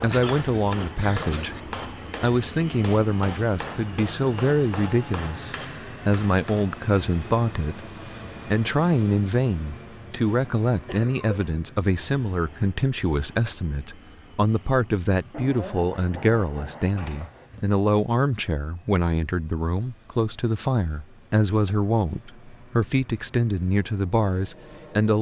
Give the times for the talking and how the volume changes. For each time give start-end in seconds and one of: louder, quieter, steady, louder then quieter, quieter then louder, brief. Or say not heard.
0.0-25.1 steady.